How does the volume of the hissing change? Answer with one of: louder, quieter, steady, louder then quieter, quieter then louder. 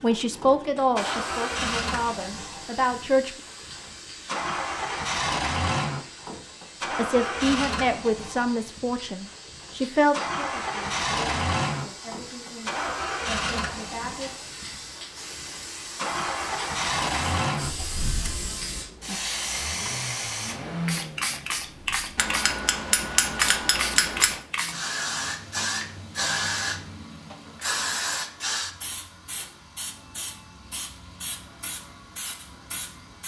louder.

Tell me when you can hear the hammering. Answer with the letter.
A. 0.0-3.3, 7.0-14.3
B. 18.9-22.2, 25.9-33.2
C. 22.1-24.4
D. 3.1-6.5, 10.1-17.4
C.